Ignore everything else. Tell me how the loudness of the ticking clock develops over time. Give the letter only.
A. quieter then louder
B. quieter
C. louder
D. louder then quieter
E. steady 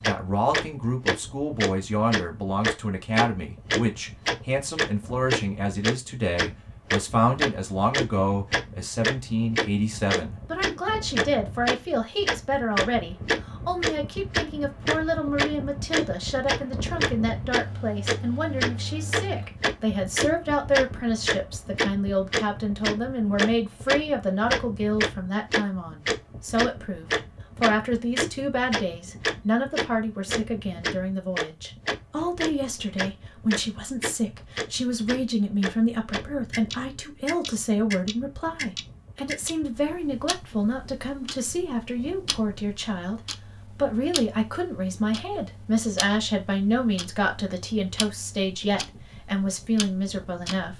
B.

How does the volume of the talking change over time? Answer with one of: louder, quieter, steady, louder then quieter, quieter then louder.
steady.